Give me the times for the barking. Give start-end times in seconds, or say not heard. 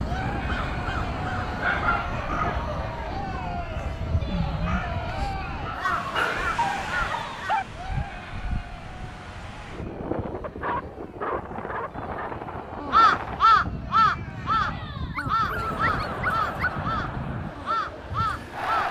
1.4-3.0, 5.7-7.7, 10.4-12.3, 15.1-16.9.